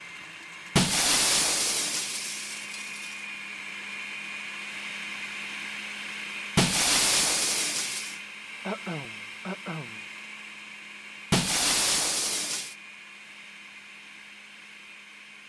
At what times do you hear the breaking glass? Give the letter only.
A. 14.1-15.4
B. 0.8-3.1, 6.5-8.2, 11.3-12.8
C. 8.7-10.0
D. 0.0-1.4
B.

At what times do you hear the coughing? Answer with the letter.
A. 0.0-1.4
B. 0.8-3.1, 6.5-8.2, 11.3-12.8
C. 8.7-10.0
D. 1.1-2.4
C.